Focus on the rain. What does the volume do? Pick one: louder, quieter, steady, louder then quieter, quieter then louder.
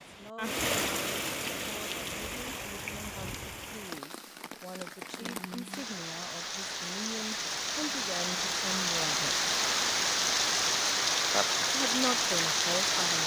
quieter then louder.